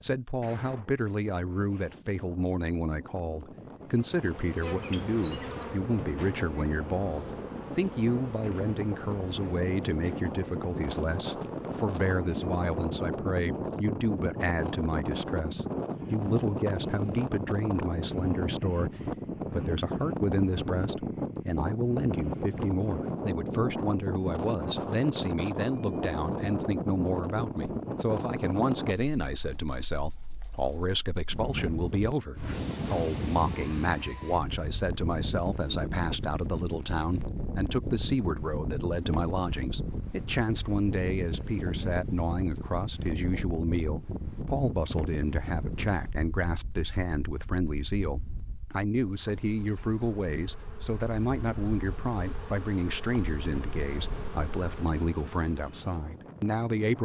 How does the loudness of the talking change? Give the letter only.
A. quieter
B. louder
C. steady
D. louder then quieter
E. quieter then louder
C.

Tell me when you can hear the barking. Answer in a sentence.
You can't hear the barking here.